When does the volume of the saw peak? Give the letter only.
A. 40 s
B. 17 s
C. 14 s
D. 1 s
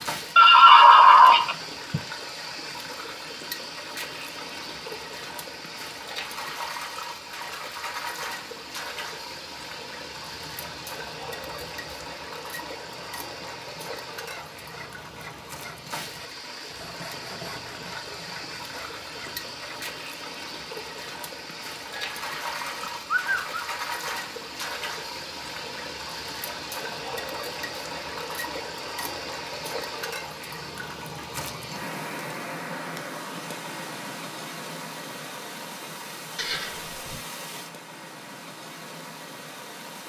B.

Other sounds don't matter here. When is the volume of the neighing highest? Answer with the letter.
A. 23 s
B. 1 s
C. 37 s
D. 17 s
B.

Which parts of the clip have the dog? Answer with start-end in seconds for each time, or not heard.
not heard.